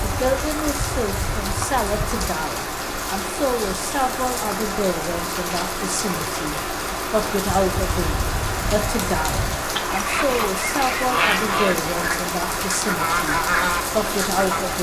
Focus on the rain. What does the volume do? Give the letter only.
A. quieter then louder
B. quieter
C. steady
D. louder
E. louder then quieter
C.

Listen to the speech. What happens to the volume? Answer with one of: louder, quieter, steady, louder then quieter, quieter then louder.
steady.